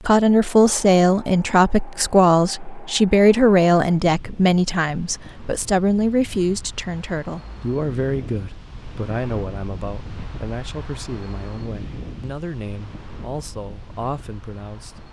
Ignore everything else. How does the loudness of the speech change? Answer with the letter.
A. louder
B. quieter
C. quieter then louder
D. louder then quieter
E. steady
B.